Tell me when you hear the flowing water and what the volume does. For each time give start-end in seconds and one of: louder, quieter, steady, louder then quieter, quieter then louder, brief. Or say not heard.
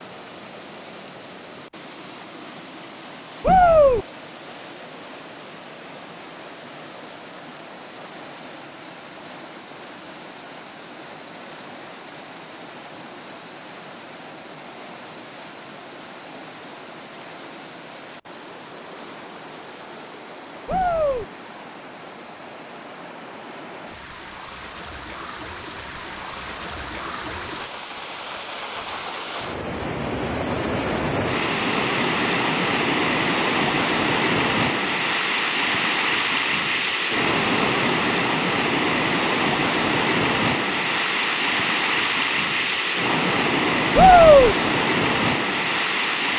0.0-46.3 louder.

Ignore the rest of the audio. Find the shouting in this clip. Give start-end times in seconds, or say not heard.
3.4-4.0, 20.6-21.2, 44.0-44.5.